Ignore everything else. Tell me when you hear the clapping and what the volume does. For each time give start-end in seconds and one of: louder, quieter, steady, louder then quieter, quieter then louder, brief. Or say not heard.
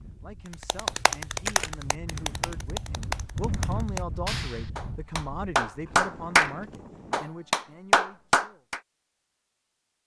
0.7-6.5 quieter then louder
7.1-8.8 brief.